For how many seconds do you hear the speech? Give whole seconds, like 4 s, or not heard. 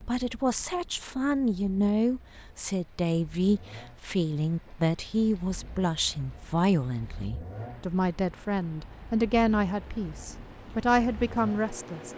12 s.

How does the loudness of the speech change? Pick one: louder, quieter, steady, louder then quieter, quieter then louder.
steady.